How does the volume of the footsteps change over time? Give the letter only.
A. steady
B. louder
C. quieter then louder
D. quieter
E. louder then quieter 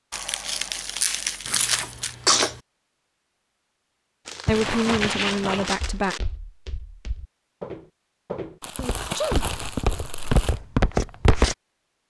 C.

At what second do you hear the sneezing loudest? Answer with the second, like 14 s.
2 s.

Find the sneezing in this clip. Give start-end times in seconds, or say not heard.
1.4-2.5, 8.8-9.4.